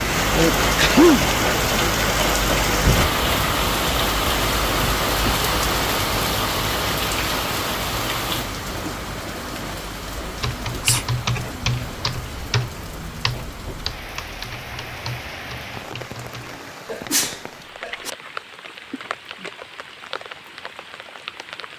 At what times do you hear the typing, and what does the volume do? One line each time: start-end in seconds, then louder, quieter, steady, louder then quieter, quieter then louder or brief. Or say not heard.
10.2-16.6 quieter.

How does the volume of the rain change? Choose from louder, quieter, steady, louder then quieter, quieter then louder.
quieter.